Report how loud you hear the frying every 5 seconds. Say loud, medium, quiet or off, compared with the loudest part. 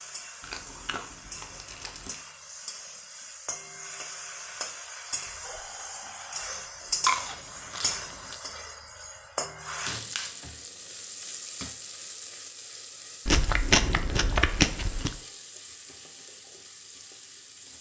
medium, loud, medium, medium.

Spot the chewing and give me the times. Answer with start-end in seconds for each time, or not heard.
0.4-2.2, 7.0-8.3, 13.2-15.2.